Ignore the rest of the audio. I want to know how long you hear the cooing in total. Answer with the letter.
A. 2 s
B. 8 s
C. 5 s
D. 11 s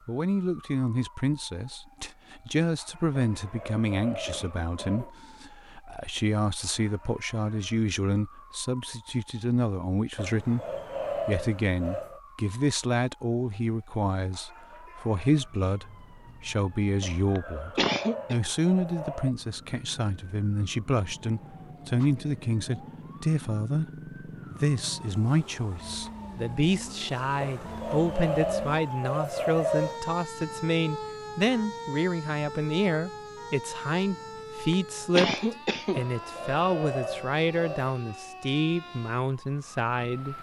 D.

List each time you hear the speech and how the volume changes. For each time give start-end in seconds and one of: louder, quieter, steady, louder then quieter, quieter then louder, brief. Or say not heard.
0.1-40.3 steady.